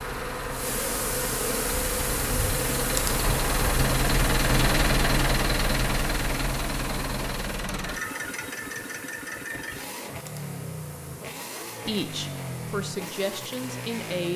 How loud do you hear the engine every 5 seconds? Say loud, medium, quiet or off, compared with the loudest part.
loud, loud, medium.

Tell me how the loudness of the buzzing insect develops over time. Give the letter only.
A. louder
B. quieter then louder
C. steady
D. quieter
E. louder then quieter
D.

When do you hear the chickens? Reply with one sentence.
You can't hear the chickens here.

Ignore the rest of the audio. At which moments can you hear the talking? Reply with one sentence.
The talking can be heard from 11.8 to 14.3 s.